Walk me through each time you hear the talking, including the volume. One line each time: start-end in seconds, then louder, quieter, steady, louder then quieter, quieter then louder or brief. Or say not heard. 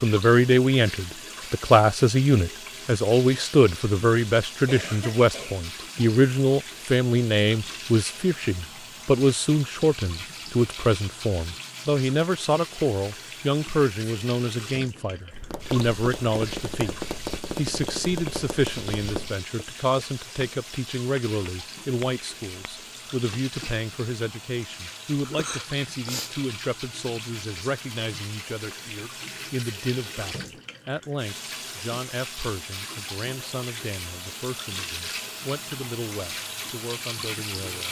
0.0-37.8 quieter.